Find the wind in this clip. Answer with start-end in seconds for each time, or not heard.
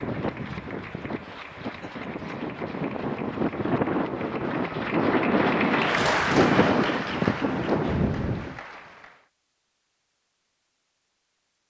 0.0-8.6.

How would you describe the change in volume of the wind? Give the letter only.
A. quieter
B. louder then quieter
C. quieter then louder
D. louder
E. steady
D.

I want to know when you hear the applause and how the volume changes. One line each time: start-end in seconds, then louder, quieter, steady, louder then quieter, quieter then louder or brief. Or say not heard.
0.0-9.3 louder then quieter.